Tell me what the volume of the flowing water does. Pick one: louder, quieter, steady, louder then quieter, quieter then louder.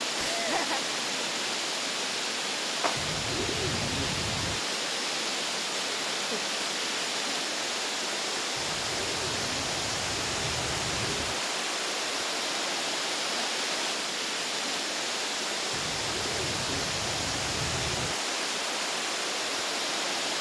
steady.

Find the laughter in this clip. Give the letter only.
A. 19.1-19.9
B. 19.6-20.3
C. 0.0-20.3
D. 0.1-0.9
D.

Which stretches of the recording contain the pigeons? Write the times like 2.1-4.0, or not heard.
3.0-4.6, 8.6-11.4, 15.7-18.1.